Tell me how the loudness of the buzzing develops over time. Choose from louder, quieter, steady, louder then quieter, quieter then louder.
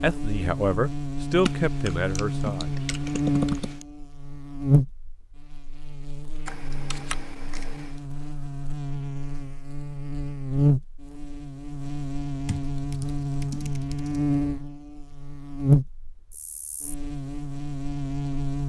steady.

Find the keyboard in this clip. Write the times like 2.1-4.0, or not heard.
1.4-3.9, 6.5-8.0, 12.4-14.2.